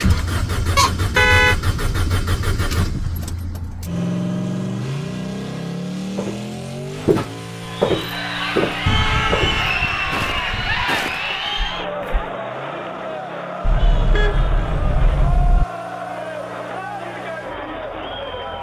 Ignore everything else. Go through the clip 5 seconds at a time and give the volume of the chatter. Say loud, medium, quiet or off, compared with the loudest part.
off, loud, loud, medium.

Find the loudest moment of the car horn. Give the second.
1 s.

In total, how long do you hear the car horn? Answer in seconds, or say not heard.
5 s.